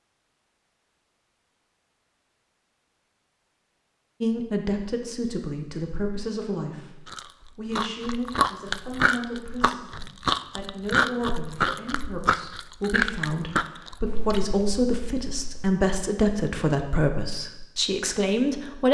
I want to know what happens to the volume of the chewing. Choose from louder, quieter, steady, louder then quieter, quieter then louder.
quieter.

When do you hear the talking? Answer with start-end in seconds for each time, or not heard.
4.2-18.9.